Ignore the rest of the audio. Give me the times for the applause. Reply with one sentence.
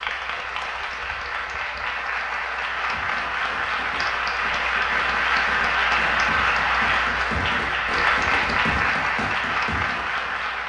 The applause can be heard from 0.0 to 10.6 s.